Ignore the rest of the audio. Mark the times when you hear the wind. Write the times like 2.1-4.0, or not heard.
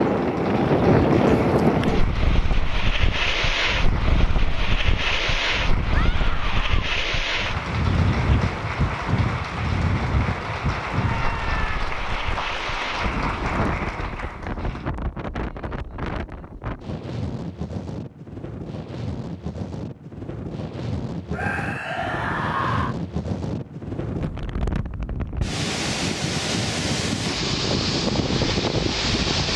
0.0-29.5.